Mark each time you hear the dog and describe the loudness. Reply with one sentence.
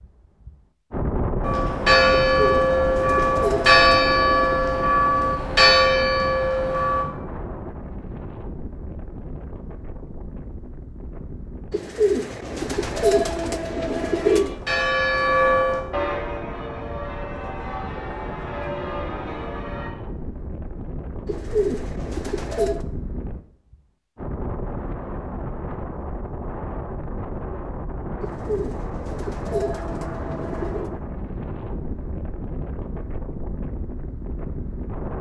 The dog can't be heard in this clip.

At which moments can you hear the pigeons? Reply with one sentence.
You can hear the pigeons from 2.4 to 4.5 s, from 11.7 to 14.6 s, from 21.2 to 22.9 s and from 28.2 to 30.9 s.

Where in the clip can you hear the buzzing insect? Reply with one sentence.
You can't hear the buzzing insect here.